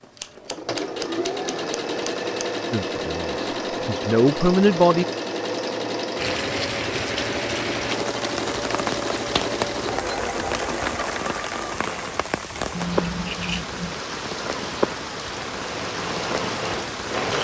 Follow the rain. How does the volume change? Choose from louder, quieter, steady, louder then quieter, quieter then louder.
steady.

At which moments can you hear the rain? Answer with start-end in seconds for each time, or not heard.
6.2-17.3.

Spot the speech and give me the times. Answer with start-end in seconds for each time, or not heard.
2.7-5.0.